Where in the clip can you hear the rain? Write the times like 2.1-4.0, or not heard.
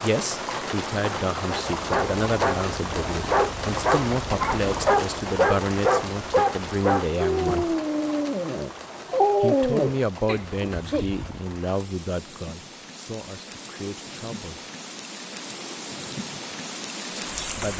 0.0-17.7.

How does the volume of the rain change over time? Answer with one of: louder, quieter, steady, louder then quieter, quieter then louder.
quieter then louder.